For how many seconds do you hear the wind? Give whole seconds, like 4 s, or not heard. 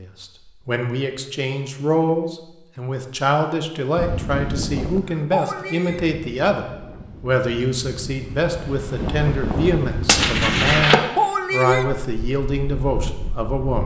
10 s.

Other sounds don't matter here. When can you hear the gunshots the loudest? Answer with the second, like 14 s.
11 s.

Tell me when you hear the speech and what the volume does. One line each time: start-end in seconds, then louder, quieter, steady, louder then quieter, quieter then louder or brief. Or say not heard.
0.0-13.8 steady.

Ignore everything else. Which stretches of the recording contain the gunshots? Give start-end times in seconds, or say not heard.
9.1-11.0.